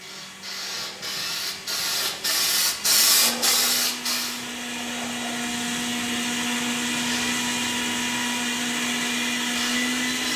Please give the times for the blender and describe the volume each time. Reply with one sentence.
The blender can be heard from 0.0 to 10.3 s, getting louder.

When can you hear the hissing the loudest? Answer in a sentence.
The loudest moment of the hissing is at 3 seconds.